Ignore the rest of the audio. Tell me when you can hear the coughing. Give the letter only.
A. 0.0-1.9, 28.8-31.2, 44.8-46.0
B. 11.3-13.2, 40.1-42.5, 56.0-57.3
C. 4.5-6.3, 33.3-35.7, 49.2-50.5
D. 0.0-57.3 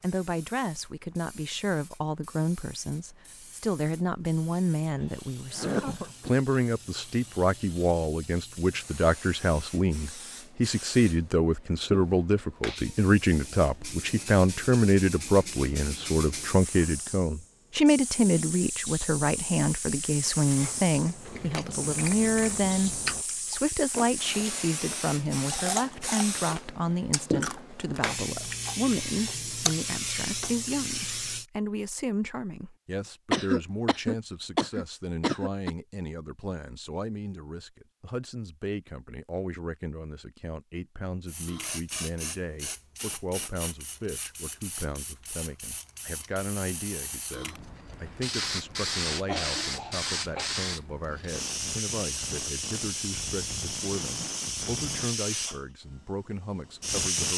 C.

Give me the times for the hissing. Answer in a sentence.
You can hear the hissing from 0.0 to 31.4 s and from 41.2 to 57.3 s.